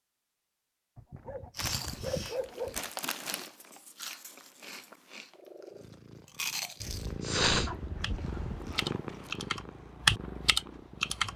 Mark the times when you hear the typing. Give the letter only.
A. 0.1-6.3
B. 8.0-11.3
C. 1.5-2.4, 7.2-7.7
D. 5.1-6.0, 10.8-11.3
B.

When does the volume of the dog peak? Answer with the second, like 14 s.
2 s.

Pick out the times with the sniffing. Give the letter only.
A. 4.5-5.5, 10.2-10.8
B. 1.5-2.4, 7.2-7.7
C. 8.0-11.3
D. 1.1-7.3
B.